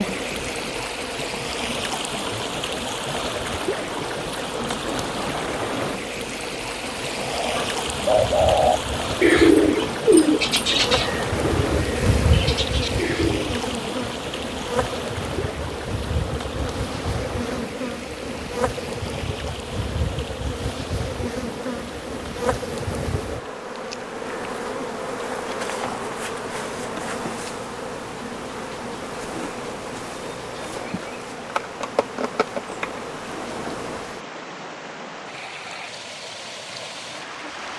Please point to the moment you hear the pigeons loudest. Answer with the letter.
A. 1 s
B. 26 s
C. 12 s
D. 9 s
D.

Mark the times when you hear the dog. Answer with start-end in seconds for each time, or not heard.
not heard.